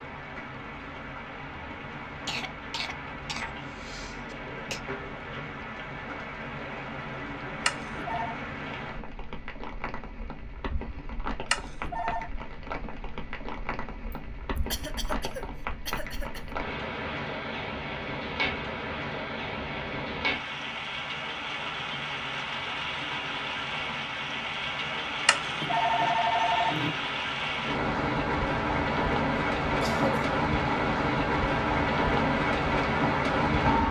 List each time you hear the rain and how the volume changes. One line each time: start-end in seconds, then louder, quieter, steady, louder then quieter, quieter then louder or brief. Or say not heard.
0.0-33.8 louder.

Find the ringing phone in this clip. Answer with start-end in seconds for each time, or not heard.
7.7-8.3, 11.5-12.3, 25.2-26.9.